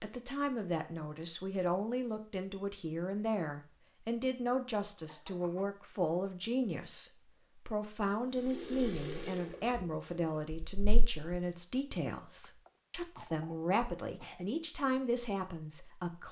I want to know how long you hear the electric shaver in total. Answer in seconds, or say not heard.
not heard.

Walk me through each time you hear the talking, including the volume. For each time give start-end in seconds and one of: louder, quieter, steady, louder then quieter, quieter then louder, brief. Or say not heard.
0.0-16.2 steady.